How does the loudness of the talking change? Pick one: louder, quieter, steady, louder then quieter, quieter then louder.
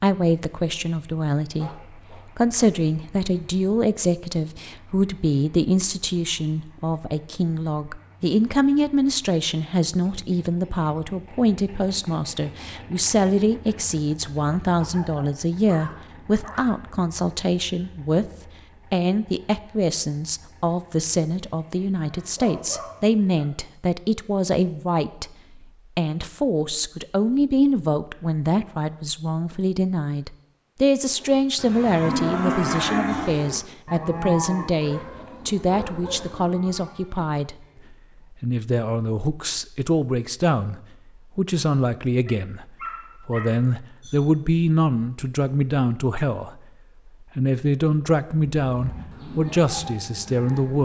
steady.